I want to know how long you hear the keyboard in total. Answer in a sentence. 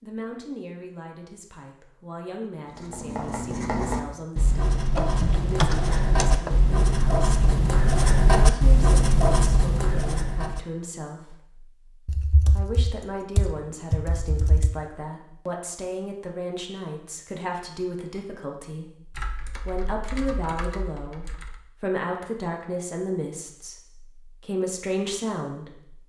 You can hear the keyboard for 7 seconds altogether.